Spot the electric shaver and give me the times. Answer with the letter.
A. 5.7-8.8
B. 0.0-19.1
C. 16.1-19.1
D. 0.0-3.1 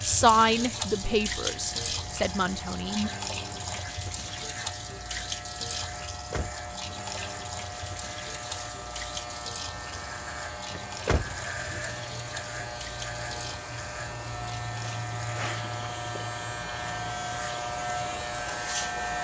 B.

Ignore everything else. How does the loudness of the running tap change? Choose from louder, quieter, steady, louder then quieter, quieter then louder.
quieter.